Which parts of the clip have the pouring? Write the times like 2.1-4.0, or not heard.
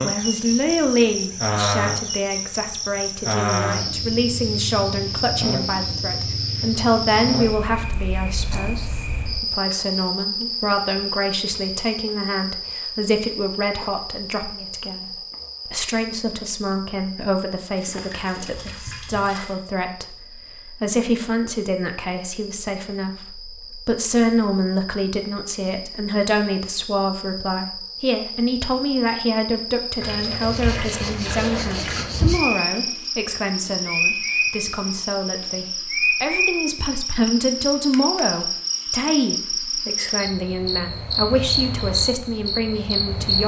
17.8-19.6, 30.0-32.0.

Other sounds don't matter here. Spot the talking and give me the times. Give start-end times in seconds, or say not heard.
0.0-43.4.